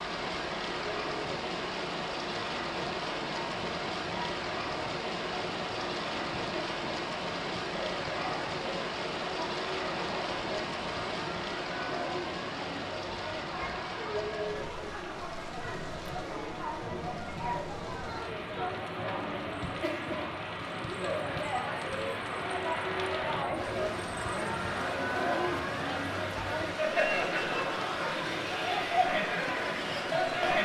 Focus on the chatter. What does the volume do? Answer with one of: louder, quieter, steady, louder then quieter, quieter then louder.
louder.